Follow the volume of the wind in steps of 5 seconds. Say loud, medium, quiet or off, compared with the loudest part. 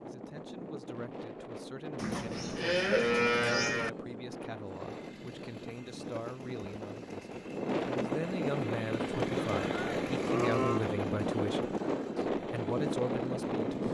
medium, loud, loud.